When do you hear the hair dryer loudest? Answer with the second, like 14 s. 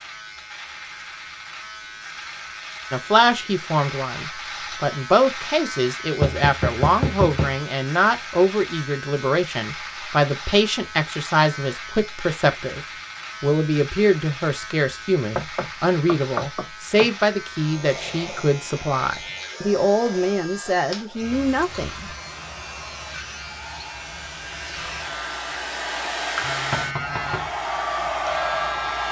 28 s.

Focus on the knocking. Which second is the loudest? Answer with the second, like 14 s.
7 s.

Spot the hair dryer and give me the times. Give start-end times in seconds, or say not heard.
17.8-29.0.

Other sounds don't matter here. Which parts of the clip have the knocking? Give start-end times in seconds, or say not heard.
6.2-7.6, 15.3-17.1, 26.7-27.5.